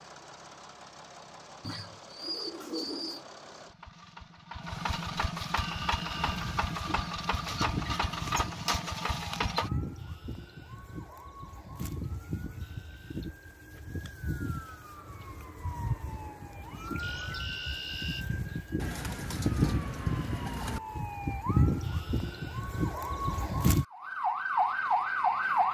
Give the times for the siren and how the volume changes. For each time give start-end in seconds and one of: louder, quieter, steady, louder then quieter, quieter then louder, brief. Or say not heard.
5.5-25.6 louder.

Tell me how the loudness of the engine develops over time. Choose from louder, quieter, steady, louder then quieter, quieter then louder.
louder.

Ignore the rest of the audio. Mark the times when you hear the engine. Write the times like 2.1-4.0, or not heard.
0.0-9.7.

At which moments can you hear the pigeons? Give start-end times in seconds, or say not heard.
1.6-3.2, 18.8-20.8.